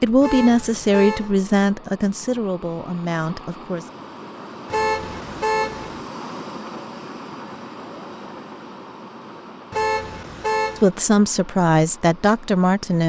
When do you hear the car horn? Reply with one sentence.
The car horn can be heard from 0.2 to 1.4 s, from 4.7 to 6.0 s and from 9.7 to 10.9 s.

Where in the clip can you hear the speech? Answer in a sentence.
You can hear the speech from 0.0 to 3.9 s and from 10.8 to 13.0 s.